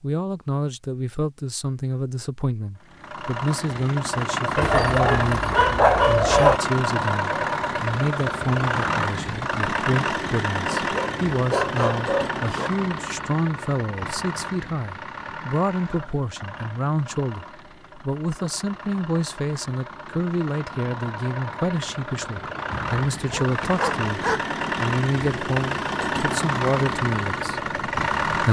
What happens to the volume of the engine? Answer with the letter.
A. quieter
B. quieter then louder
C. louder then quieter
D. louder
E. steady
B.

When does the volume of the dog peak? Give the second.
6 s.